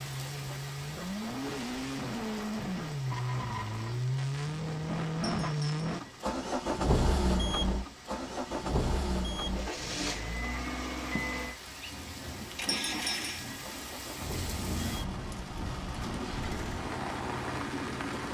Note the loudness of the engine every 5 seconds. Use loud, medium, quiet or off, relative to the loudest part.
loud, loud, medium, medium.